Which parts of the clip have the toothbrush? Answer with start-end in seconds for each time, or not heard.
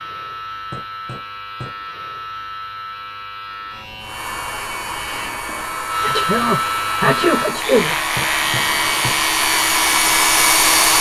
not heard.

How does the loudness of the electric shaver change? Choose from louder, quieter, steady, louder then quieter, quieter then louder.
louder.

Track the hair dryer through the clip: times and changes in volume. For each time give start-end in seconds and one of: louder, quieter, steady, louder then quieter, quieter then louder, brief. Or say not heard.
4.0-10.9 louder.